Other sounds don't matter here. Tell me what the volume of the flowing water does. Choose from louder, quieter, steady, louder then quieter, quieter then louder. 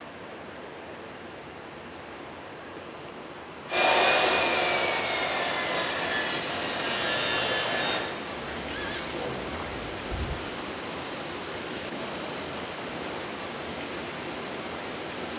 louder.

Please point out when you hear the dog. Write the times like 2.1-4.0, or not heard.
not heard.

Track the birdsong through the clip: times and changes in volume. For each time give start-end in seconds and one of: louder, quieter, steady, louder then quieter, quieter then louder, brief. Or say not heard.
not heard.